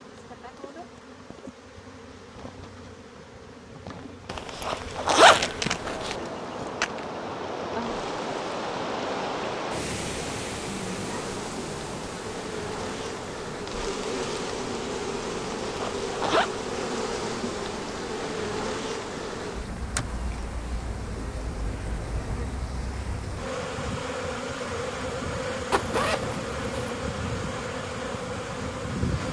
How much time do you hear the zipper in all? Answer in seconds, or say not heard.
4 s.